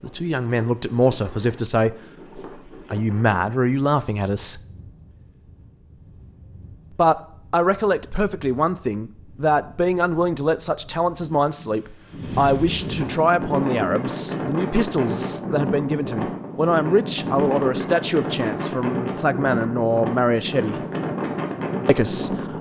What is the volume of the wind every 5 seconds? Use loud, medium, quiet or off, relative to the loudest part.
quiet, quiet, loud, loud, loud.